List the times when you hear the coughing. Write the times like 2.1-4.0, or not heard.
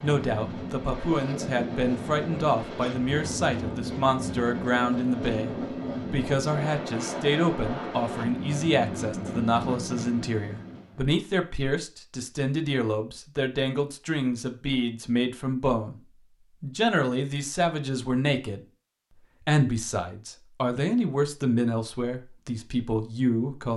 not heard.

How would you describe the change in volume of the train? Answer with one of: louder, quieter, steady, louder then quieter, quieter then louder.
steady.